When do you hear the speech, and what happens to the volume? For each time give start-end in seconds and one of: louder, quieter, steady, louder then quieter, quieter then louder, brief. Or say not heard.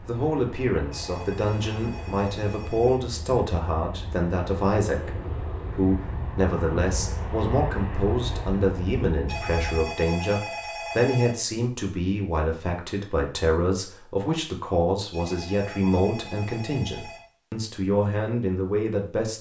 0.0-19.3 steady.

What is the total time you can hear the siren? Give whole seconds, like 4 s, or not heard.
not heard.